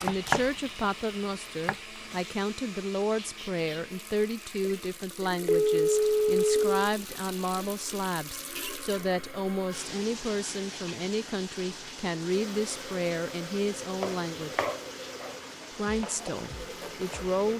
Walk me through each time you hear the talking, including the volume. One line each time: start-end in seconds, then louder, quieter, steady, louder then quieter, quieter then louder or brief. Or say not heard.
0.0-14.7 steady
15.8-17.5 brief.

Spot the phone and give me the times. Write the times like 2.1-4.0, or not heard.
5.5-6.9.